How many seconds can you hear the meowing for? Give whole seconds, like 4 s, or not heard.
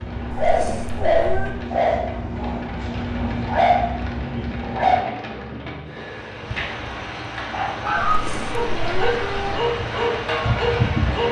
3 s.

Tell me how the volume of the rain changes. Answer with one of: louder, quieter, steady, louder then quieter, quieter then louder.
louder.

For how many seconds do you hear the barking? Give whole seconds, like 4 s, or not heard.
9 s.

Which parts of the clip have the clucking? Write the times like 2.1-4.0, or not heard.
not heard.